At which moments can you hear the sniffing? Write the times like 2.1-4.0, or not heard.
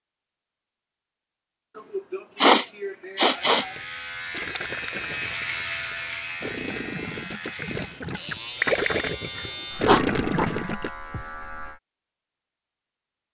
1.9-3.7, 9.3-10.4.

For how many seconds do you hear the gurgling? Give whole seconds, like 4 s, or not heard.
7 s.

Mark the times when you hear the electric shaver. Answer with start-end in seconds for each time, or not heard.
3.3-11.8.